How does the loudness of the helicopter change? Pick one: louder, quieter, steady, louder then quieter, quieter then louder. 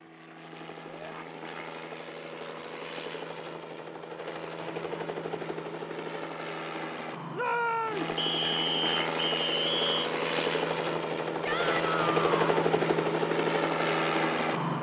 louder.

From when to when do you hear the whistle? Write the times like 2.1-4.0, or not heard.
8.2-10.1.